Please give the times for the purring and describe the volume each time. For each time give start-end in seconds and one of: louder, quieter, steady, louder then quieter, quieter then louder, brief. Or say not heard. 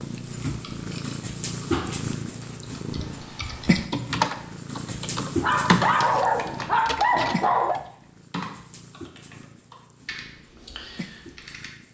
0.0-11.8 quieter.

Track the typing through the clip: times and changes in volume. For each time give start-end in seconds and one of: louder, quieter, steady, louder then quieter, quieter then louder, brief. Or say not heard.
0.5-11.7 louder then quieter.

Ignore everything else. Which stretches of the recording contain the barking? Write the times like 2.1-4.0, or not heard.
5.4-7.8.